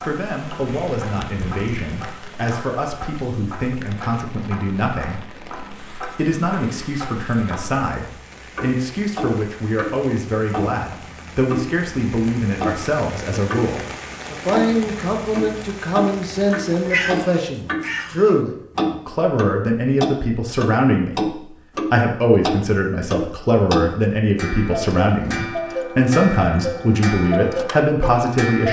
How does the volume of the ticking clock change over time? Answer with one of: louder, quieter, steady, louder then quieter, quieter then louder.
louder.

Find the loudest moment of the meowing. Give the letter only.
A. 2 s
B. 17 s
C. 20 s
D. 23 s
B.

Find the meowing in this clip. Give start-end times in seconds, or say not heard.
0.7-2.1, 16.7-18.4.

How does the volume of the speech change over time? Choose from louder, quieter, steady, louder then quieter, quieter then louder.
louder.